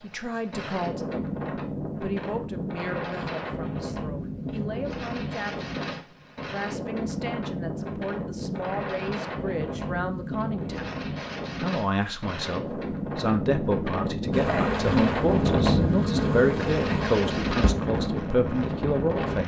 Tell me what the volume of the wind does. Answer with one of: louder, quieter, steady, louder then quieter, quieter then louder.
louder.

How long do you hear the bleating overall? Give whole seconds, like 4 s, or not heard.
not heard.